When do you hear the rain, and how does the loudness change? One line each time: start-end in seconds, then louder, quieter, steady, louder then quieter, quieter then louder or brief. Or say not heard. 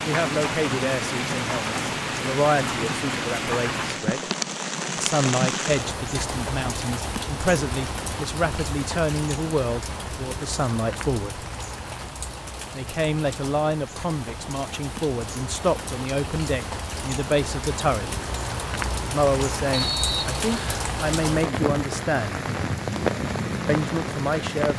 0.0-24.7 quieter then louder.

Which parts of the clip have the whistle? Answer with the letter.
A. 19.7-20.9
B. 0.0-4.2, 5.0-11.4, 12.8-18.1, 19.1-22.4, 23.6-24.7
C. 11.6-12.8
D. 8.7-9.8
A.